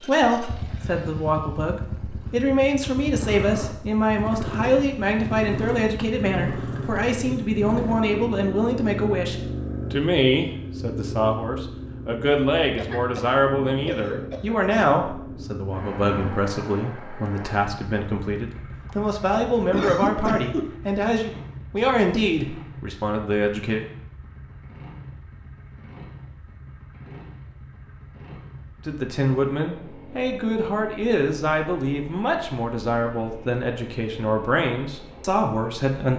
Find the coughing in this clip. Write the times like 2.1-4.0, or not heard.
12.8-14.6, 18.9-20.8.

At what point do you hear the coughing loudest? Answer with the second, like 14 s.
20 s.